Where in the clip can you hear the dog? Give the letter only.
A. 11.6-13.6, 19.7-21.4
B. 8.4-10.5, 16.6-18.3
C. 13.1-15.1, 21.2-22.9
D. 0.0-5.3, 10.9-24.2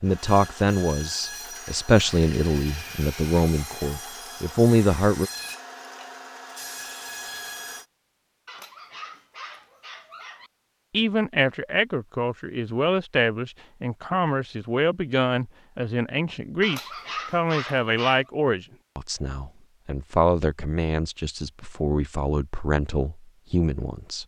B.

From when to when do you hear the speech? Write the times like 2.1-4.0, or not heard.
0.0-5.3, 10.9-24.2.